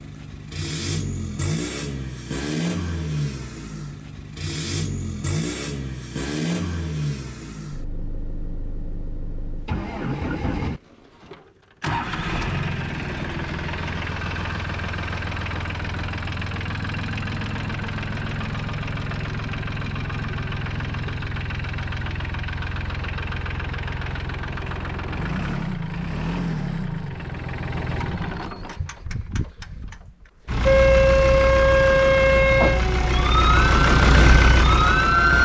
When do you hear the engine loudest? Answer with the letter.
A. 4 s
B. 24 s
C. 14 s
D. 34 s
D.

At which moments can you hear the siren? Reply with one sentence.
You can hear the siren from 30.6 to 35.3 s.